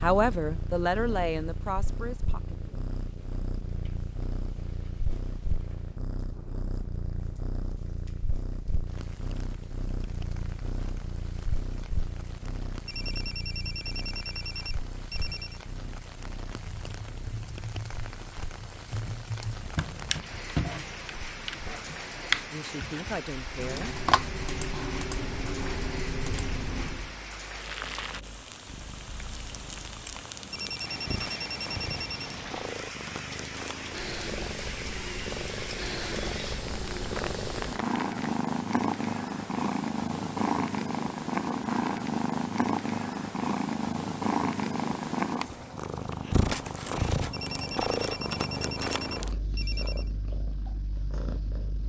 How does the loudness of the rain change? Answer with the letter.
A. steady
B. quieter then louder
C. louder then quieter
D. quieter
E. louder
E.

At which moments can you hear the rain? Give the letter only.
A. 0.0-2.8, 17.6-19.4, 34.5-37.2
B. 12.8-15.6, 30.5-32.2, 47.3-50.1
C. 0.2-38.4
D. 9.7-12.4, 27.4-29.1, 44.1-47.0
C.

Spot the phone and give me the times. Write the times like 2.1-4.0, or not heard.
12.8-15.6, 30.5-32.2, 47.3-50.1.